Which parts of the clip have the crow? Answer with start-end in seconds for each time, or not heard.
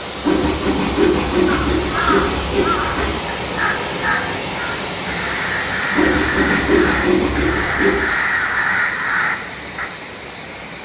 1.4-9.9.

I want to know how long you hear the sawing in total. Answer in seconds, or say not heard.
5 s.